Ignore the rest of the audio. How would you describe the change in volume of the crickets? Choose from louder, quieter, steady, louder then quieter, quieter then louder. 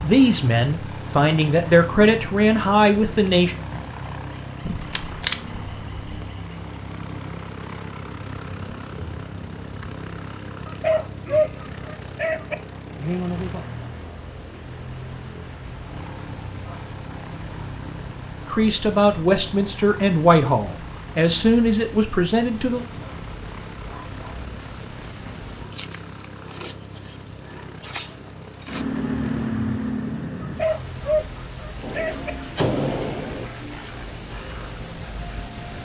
louder.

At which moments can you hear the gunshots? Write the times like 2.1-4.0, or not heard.
4.7-6.3, 31.8-33.5.